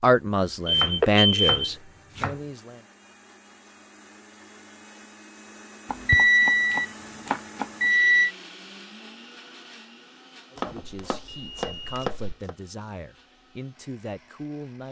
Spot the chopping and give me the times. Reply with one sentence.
The chopping can be heard from 0.7 to 2.5 s, from 5.8 to 7.9 s and from 10.6 to 12.6 s.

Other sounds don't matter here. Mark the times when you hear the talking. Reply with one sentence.
You can hear the talking from 0.0 to 2.9 s and from 10.5 to 14.8 s.